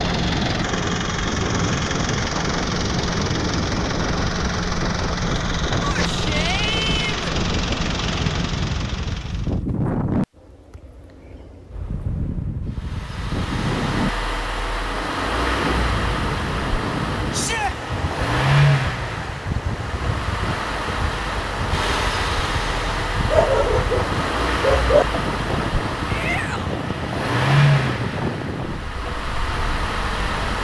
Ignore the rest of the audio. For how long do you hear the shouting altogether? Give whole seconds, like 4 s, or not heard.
3 s.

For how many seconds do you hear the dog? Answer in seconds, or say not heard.
2 s.